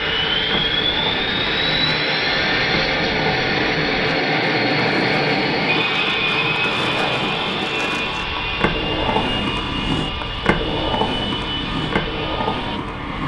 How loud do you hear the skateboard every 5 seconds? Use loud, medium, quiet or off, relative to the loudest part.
medium, loud, loud.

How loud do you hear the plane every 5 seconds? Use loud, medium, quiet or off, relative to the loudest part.
loud, loud, medium.